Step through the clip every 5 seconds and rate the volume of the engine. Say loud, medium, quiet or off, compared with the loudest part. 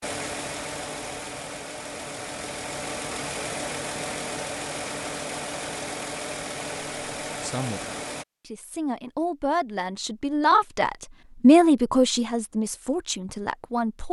loud, loud, off.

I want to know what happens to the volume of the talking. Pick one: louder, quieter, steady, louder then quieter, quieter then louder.
louder then quieter.